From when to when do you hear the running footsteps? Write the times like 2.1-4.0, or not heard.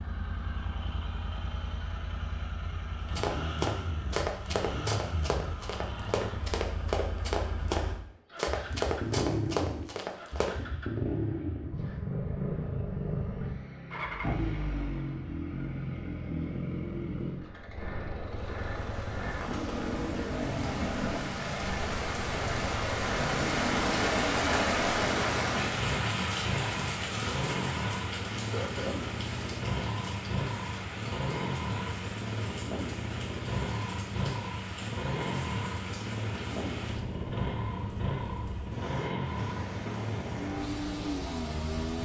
3.1-10.6.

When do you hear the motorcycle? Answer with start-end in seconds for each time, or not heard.
0.0-42.0.